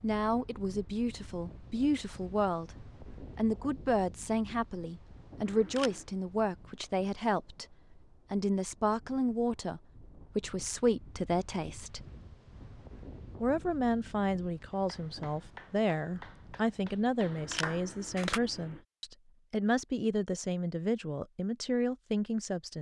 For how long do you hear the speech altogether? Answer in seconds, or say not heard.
21 s.